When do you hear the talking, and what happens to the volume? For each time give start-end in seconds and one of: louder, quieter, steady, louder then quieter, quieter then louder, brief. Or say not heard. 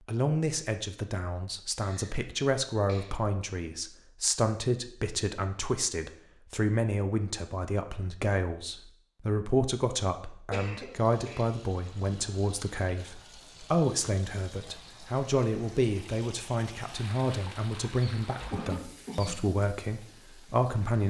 0.1-21.0 steady.